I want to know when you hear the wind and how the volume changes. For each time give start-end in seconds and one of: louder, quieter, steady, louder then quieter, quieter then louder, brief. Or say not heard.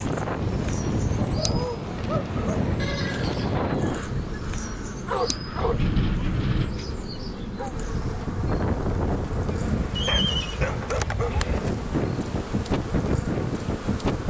0.0-14.2 steady.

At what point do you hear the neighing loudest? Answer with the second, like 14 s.
10 s.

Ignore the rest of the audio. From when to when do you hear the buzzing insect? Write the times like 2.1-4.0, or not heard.
0.0-14.2.